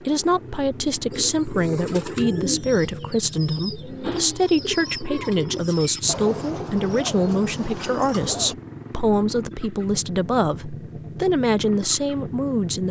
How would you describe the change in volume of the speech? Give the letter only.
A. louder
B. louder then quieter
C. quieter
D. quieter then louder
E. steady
E.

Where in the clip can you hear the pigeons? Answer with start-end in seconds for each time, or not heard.
1.1-8.6.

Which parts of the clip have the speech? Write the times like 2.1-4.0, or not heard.
0.1-12.8.